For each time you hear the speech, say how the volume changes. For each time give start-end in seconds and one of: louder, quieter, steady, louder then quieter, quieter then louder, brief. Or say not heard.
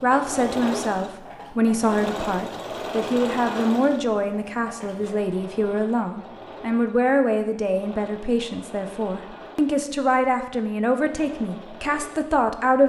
0.0-12.8 steady.